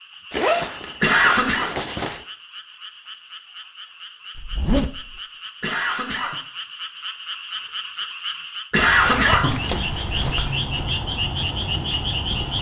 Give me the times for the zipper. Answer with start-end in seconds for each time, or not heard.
0.3-2.2, 4.3-5.2, 9.0-10.4.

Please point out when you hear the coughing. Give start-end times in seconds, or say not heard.
1.0-1.7, 5.6-6.3, 8.7-10.5.